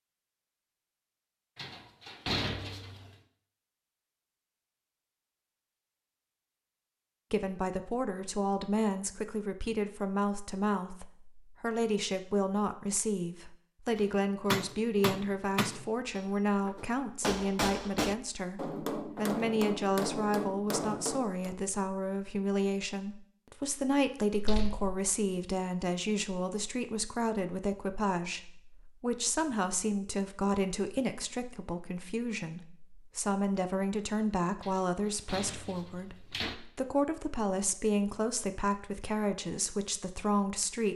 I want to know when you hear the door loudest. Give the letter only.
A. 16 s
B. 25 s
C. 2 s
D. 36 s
C.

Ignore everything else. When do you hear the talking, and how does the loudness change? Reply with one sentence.
You can hear the talking from 7.3 to 40.9 s, at a steady volume.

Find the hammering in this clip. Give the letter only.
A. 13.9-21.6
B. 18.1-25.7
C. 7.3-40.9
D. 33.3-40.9
A.